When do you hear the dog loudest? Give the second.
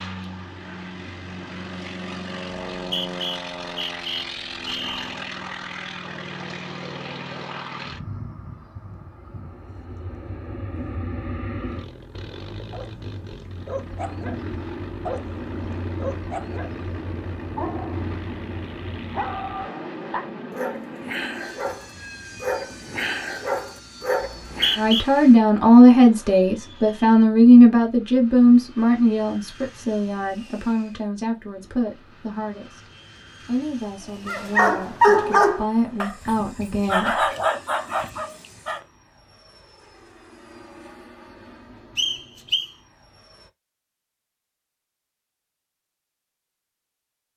35 s.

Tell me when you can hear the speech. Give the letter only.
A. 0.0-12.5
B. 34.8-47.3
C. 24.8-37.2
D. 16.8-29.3
C.